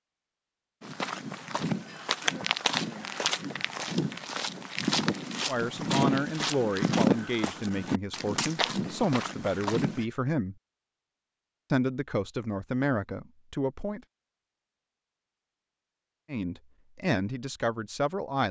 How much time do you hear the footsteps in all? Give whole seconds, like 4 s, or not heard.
9 s.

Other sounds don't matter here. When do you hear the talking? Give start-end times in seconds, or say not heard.
5.5-10.6, 11.7-14.0, 16.3-18.4.